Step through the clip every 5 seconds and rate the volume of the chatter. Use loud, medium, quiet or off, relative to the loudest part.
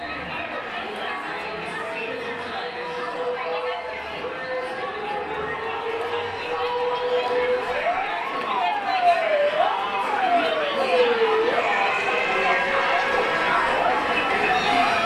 medium, medium, loud.